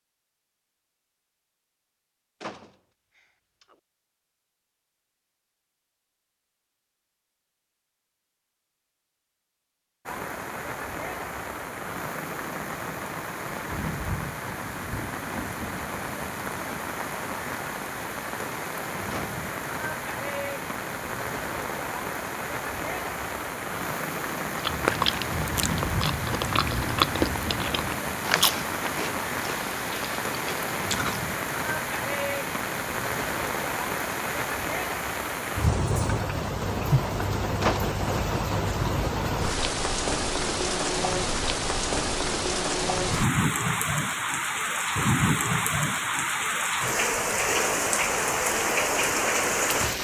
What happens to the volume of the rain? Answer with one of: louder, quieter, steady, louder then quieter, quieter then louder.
louder.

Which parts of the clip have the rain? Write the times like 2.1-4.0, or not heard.
10.1-49.9.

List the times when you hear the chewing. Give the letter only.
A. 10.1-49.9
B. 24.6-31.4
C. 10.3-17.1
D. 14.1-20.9
B.